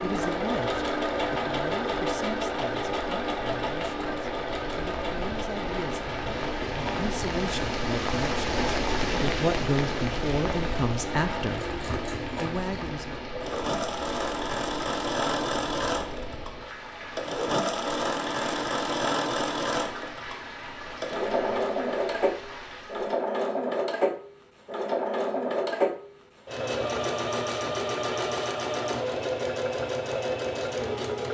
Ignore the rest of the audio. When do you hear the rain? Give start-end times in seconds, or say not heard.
0.1-23.1.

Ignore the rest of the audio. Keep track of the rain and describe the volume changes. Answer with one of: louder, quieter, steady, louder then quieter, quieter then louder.
louder then quieter.